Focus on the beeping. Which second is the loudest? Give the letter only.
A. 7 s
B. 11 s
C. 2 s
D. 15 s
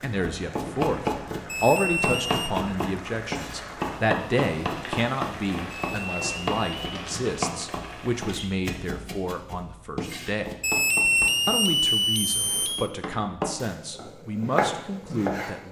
B.